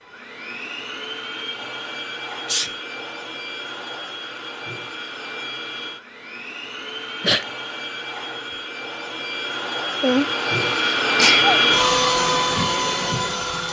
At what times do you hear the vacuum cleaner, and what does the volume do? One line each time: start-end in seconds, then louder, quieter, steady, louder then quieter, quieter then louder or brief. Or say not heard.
0.0-13.6 louder.